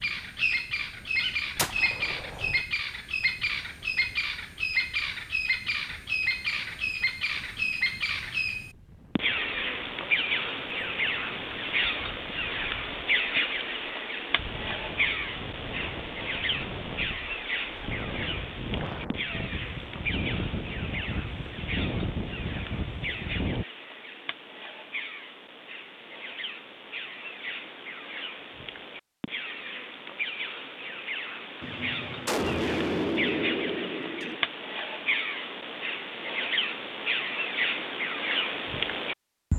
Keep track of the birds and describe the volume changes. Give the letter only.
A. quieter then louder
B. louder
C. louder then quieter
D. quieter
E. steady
A.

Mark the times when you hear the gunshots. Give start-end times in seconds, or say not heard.
1.6-2.6, 31.6-34.4.